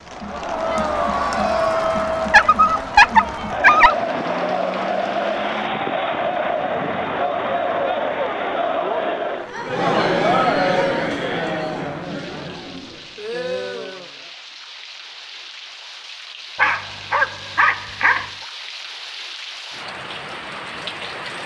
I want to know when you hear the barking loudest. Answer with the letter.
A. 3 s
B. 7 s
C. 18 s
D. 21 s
A.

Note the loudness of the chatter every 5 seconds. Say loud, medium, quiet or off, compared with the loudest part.
loud, loud, loud, off, off.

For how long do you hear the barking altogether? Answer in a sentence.
The barking can be heard for 3 seconds in total.